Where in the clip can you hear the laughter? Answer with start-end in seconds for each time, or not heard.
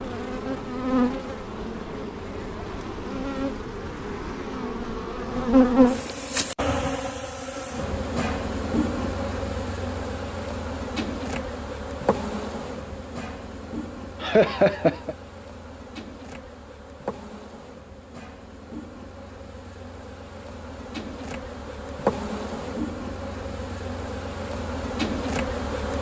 14.2-15.2.